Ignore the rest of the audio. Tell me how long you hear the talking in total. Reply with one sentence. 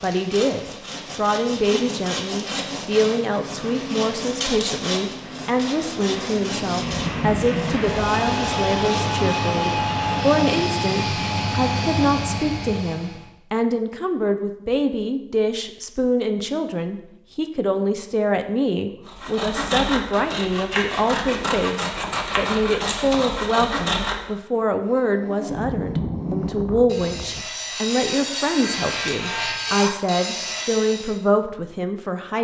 The talking can be heard for 32 seconds in total.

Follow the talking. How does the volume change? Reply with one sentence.
The volume of the talking stays about the same.